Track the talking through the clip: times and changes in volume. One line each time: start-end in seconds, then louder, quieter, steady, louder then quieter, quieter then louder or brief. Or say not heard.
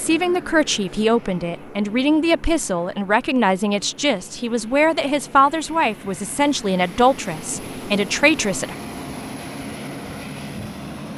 0.0-8.8 steady.